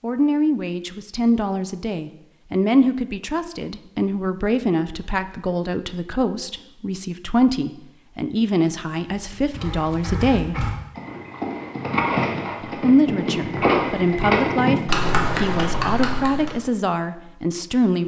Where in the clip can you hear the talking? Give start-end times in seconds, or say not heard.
0.0-10.7, 12.7-18.0.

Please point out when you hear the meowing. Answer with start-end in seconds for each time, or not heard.
not heard.